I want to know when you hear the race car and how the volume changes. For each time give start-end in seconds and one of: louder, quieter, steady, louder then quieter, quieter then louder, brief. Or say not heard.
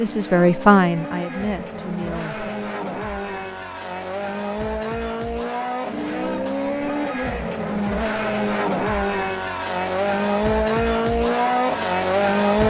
0.0-12.6 louder.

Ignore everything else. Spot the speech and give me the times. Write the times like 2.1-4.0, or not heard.
0.0-2.5.